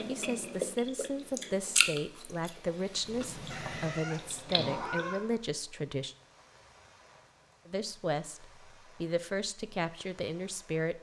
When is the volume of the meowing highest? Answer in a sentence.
The loudest moment of the meowing is at 5 seconds.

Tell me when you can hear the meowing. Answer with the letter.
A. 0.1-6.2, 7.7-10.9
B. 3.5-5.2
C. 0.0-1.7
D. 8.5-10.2
B.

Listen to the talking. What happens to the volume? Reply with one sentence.
The volume of the talking stays about the same.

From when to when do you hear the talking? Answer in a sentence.
The talking can be heard from 0.1 to 6.2 s and from 7.7 to 10.9 s.